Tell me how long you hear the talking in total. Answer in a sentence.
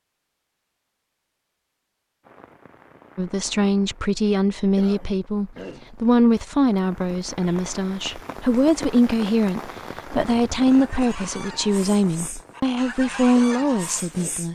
You can hear the talking for 11 seconds altogether.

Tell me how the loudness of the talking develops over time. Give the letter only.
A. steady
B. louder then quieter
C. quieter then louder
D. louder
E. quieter
A.